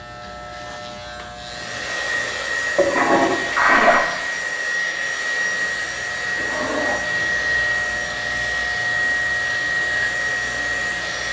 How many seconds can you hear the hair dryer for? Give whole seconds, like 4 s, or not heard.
10 s.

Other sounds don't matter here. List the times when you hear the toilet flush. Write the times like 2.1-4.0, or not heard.
2.7-4.0, 6.3-7.0.